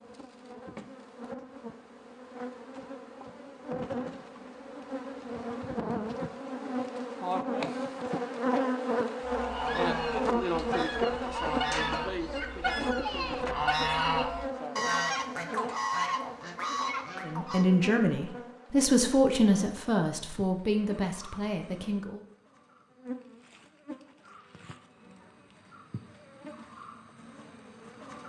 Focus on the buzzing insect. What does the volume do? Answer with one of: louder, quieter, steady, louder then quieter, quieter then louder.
louder then quieter.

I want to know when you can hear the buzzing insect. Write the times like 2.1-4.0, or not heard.
0.0-28.2.